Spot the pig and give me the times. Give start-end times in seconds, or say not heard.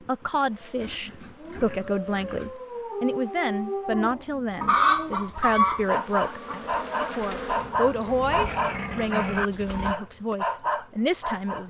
0.8-2.6, 8.1-9.9.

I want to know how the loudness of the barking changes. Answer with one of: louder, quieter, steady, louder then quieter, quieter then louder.
louder.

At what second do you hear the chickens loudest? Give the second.
5 s.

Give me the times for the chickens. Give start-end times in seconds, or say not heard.
4.6-7.2.